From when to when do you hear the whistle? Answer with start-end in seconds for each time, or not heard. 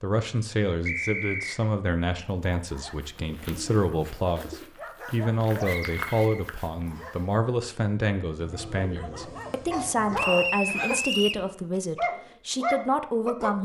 0.8-1.6, 5.6-7.1, 10.2-11.4.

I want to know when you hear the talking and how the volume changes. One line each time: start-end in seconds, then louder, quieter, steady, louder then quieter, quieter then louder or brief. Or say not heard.
0.0-13.6 steady.